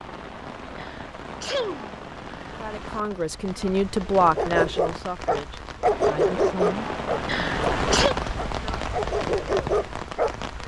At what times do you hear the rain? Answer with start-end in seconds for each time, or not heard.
0.0-10.6.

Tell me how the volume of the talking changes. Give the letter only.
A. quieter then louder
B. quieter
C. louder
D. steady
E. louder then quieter
E.